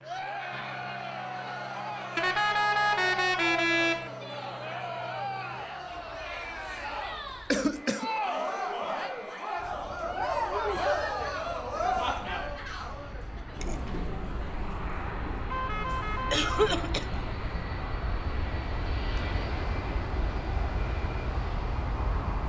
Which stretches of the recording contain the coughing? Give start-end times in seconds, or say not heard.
7.5-8.1, 16.3-17.1.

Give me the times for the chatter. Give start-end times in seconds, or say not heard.
0.0-17.6.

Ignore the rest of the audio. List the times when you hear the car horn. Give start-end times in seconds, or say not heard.
2.1-4.1, 15.5-16.7.